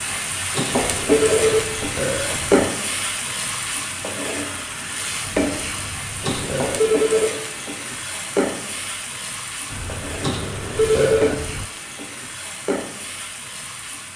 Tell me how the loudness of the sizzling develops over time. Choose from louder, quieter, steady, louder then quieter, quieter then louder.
quieter.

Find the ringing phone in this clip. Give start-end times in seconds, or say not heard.
0.5-1.6, 6.2-7.3, 10.2-11.3.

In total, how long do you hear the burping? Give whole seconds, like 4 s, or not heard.
5 s.